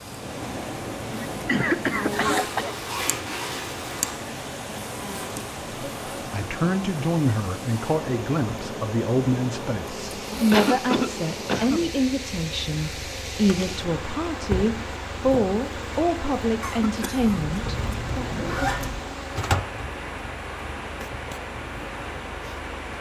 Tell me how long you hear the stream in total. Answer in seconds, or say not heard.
23 s.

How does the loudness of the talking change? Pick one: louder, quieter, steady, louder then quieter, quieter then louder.
steady.